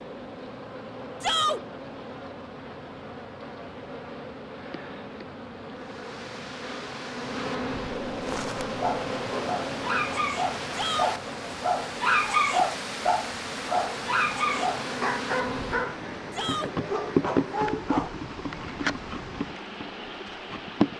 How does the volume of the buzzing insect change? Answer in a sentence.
The volume of the buzzing insect goes up.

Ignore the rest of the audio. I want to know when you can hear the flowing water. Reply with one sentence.
You can hear the flowing water from 5.7 to 20.9 s.